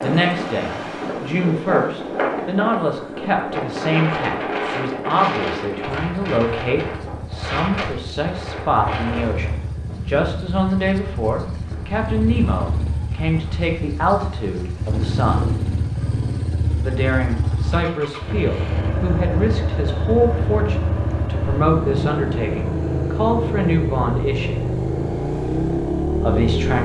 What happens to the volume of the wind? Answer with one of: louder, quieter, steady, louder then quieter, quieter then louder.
quieter.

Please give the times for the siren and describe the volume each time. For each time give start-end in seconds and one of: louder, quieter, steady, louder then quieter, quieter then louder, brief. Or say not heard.
not heard.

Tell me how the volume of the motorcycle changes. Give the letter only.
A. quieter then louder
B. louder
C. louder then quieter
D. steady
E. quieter
B.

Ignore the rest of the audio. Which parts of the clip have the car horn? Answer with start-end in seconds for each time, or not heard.
not heard.